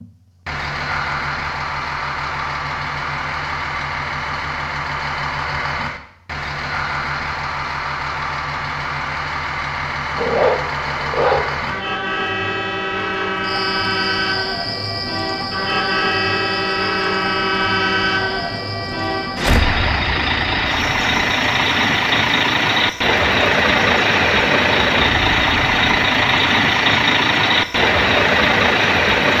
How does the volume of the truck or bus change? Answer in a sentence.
The loudness of the truck or bus goes up.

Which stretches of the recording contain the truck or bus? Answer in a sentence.
The truck or bus can be heard from 0.0 to 29.3 s.